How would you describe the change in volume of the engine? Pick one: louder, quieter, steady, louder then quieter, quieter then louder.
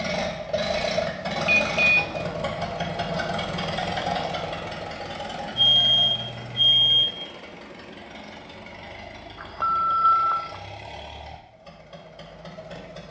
quieter.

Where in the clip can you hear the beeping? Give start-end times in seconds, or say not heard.
1.4-2.0, 5.5-7.0, 9.4-10.3.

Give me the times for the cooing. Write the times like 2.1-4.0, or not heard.
not heard.